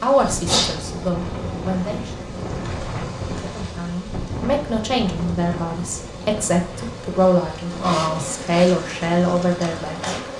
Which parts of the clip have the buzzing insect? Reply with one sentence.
The buzzing insect can be heard from 0.0 to 10.3 s.